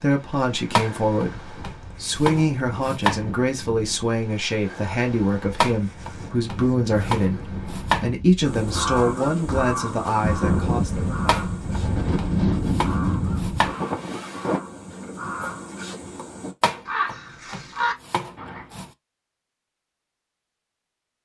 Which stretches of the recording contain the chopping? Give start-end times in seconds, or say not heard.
0.8-3.6, 5.6-8.1, 11.2-13.8, 16.6-18.9.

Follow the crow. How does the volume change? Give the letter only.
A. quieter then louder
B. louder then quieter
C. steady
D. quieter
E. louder
A.